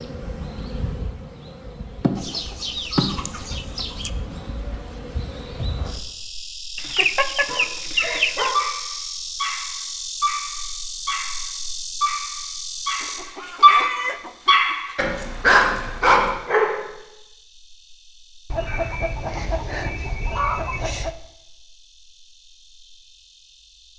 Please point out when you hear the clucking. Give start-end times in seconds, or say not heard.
2.1-4.1, 6.8-8.6, 13.0-14.8, 18.4-21.1.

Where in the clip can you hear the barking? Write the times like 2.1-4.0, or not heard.
7.5-16.8.